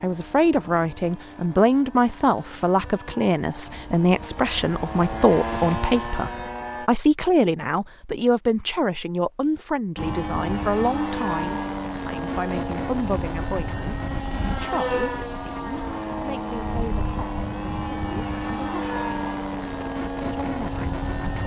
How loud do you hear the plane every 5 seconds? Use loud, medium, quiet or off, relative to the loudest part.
quiet, loud, loud, loud, loud.